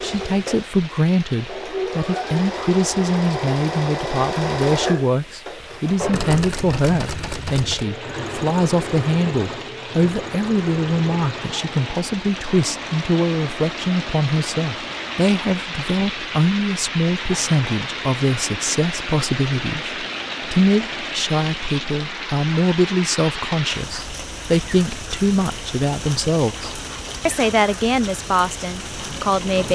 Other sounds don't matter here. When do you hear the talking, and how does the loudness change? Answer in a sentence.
You can hear the talking from 0.0 to 29.7 s, at a steady volume.